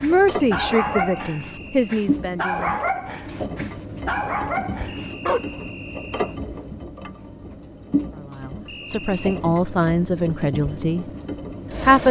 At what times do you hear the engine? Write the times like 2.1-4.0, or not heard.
0.0-12.0.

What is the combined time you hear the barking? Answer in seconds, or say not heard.
6 s.